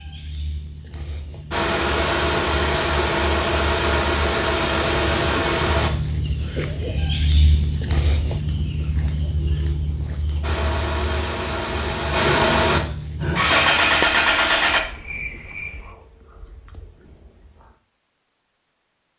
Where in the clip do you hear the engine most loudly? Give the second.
14 s.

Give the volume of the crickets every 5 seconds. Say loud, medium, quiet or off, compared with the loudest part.
medium, loud, medium, medium.